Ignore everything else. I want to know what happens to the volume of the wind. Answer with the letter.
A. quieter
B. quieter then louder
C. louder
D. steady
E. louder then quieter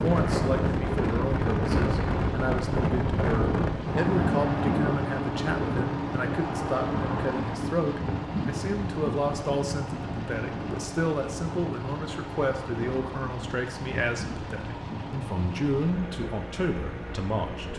A.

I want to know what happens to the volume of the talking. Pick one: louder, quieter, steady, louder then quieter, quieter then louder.
steady.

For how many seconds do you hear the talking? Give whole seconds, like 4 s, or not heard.
18 s.